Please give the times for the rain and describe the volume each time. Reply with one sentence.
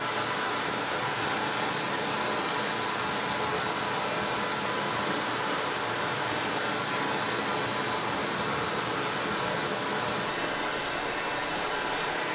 You can hear the rain from 0.0 to 12.3 s, at a steady volume.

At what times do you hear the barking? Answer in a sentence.
You can't hear the barking here.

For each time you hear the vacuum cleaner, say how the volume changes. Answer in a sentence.
The vacuum cleaner can be heard from 0.0 to 12.3 s, at a steady volume.